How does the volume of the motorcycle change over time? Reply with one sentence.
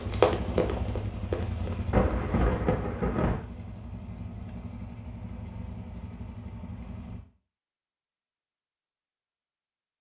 The loudness of the motorcycle goes down.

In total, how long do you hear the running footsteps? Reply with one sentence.
The running footsteps can be heard for 2 seconds in total.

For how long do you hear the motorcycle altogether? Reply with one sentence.
The motorcycle can be heard for 7 seconds in total.